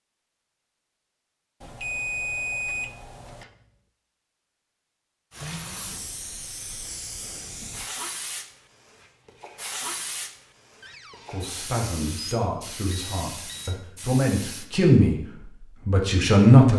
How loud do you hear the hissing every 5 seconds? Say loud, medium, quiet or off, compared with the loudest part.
off, loud, loud, off.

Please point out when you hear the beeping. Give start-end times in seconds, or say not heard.
1.6-3.5, 12.9-13.8.